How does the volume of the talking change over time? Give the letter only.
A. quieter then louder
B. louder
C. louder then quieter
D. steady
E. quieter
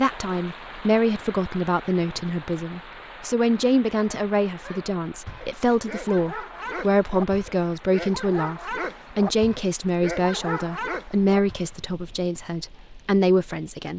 D.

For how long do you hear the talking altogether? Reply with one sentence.
You can hear the talking for 14 seconds altogether.